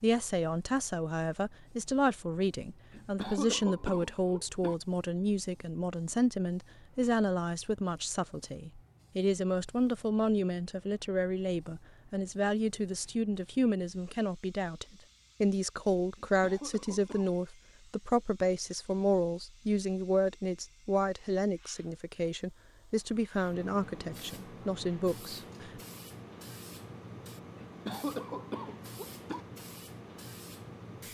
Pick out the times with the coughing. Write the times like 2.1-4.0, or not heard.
2.9-4.8, 16.1-17.4, 27.6-29.4.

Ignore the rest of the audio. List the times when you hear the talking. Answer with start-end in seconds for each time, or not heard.
0.0-25.7.